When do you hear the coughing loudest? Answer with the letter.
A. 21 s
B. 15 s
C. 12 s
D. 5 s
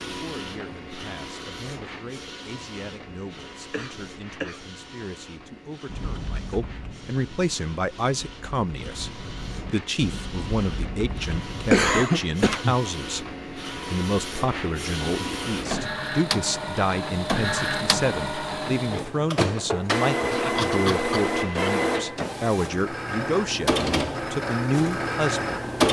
C.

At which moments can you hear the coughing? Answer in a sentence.
You can hear the coughing from 3.7 to 4.7 s, from 11.7 to 12.8 s and from 20.3 to 21.8 s.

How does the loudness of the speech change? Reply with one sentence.
The loudness of the speech goes up.